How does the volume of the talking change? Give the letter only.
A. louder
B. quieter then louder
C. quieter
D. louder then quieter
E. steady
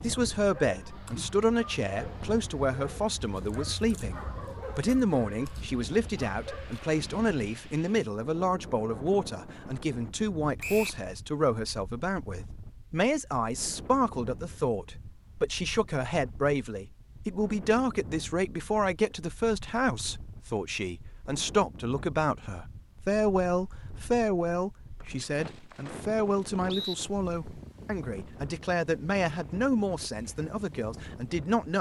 E.